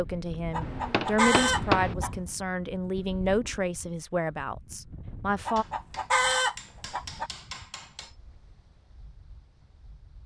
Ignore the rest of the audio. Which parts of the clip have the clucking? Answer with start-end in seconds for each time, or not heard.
0.5-2.1, 5.5-7.3.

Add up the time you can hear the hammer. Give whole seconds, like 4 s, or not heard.
4 s.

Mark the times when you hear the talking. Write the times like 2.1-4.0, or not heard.
0.0-5.7.